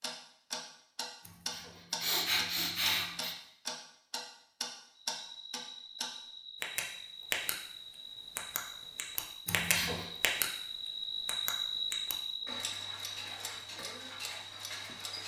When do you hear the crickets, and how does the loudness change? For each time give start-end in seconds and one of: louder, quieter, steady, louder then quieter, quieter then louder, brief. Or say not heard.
5.2-15.2 louder then quieter.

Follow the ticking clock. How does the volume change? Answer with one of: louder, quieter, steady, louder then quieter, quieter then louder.
quieter.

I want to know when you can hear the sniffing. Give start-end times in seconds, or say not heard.
1.2-3.4, 9.4-10.1.